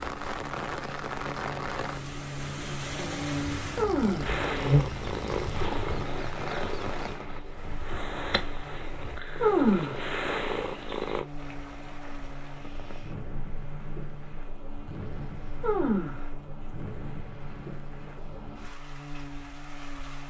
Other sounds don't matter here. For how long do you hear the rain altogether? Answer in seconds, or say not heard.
20 s.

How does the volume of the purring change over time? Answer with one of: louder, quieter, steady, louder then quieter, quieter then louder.
quieter then louder.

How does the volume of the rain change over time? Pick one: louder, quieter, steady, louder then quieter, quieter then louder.
quieter.